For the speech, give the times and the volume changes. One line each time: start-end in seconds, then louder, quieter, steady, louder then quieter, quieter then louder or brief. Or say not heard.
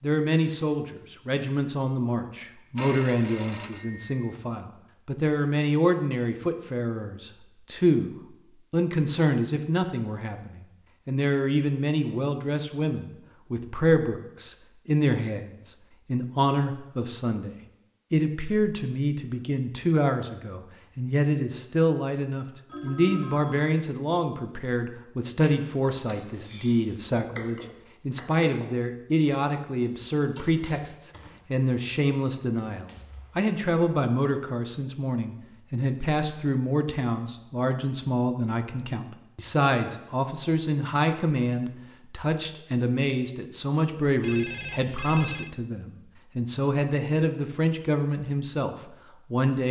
0.0-17.5 steady
18.1-49.6 steady.